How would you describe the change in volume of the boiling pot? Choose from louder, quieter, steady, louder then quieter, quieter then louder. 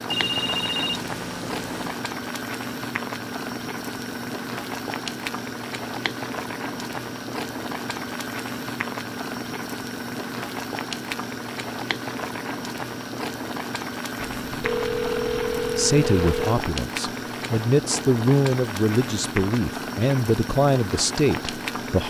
steady.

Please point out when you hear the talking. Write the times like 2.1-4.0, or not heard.
15.8-22.0.